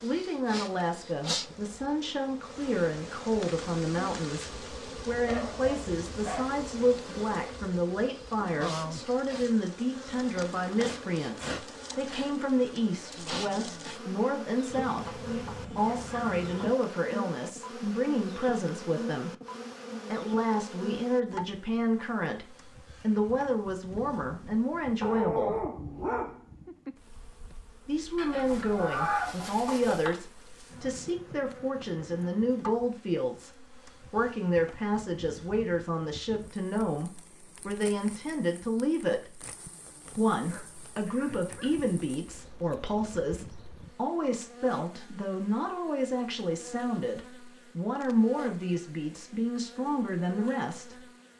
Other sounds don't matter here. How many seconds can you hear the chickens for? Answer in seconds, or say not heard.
4 s.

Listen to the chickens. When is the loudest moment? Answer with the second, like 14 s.
29 s.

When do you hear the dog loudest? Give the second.
25 s.